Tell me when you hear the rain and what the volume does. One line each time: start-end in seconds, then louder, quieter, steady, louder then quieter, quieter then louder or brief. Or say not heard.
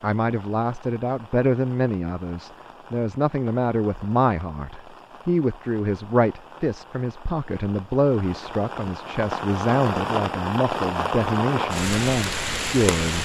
0.0-13.2 louder.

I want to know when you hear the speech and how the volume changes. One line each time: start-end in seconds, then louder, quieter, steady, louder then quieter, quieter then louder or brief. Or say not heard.
0.0-13.2 steady.